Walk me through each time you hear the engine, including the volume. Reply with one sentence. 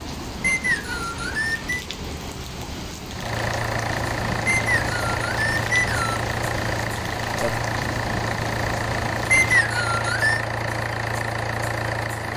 The engine can be heard from 3.1 to 12.3 s, at a steady volume.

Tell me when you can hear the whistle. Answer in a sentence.
The whistle can be heard from 0.4 to 1.8 s, from 4.5 to 6.2 s and from 9.3 to 10.4 s.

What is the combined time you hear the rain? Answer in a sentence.
The rain can be heard for 10 seconds in total.